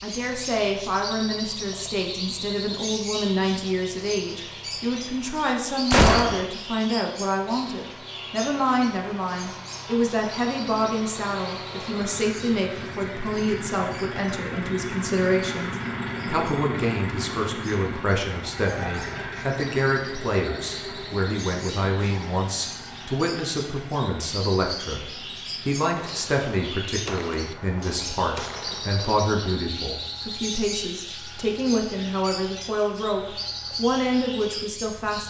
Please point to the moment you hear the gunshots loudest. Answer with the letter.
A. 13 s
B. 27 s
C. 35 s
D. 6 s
D.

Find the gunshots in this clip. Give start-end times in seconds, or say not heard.
5.9-6.5, 25.9-29.1.